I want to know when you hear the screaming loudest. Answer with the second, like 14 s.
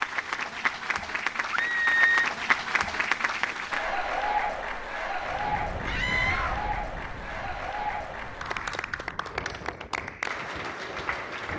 2 s.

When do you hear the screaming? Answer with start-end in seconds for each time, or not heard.
1.5-2.2, 5.8-6.7.